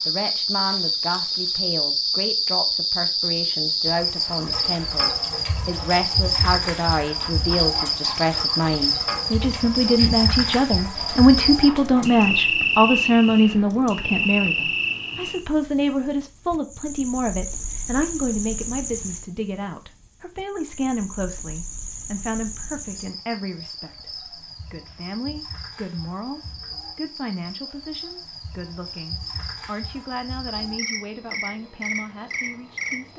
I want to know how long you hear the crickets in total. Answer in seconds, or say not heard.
33 s.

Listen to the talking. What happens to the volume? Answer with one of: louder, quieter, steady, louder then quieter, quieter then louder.
louder then quieter.